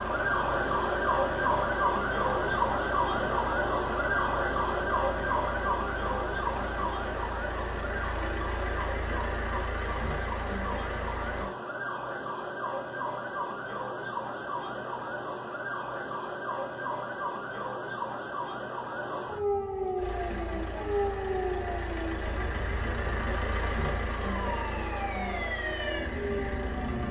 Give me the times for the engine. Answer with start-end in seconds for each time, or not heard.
0.0-11.5, 19.9-27.0.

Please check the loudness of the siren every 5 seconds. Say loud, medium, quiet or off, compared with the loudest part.
loud, medium, medium, medium, medium, medium.